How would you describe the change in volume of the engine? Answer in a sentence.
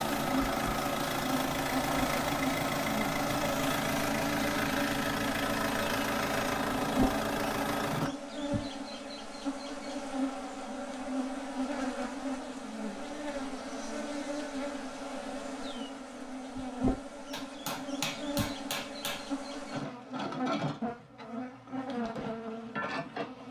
The loudness of the engine stays about the same.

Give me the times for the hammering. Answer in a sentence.
The hammering can be heard from 17.3 to 19.3 s.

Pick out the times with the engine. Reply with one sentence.
The engine can be heard from 0.0 to 8.1 s.